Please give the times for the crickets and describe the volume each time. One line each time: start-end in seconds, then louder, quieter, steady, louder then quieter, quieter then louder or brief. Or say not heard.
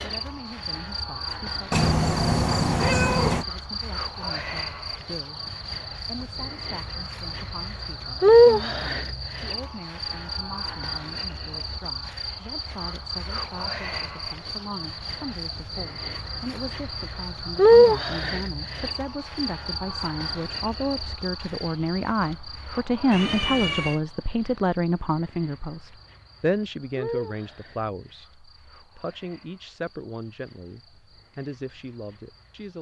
0.0-32.7 louder then quieter.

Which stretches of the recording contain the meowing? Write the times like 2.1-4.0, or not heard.
1.7-3.5, 23.1-24.0.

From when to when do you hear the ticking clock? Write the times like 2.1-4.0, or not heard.
not heard.